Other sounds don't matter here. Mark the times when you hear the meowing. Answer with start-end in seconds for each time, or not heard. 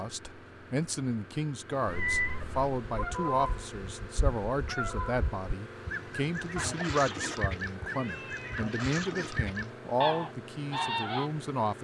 1.9-2.6, 6.5-8.6.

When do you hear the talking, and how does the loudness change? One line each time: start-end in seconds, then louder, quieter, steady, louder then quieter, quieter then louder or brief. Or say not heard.
0.0-11.8 steady.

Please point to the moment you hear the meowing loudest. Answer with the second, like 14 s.
2 s.